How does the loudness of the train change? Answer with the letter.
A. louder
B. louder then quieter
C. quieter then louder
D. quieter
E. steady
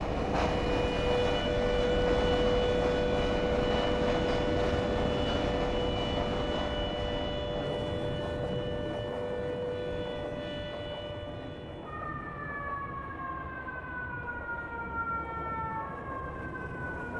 D.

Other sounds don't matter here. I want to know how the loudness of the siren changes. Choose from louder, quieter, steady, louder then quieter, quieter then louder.
quieter.